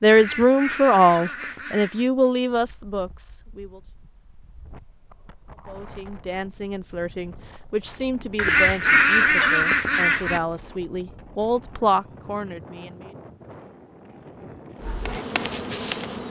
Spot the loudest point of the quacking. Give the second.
9 s.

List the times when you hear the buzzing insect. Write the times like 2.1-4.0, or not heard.
14.8-16.2.